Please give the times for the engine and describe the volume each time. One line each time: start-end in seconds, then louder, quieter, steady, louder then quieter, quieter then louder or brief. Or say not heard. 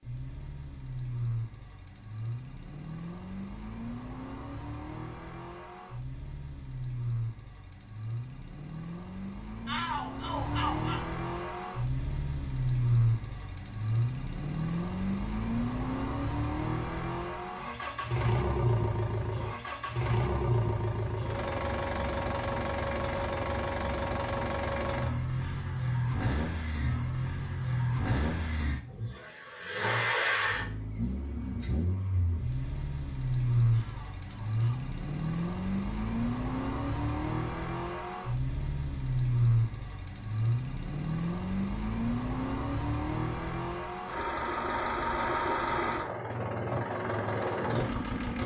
0.0-48.4 louder.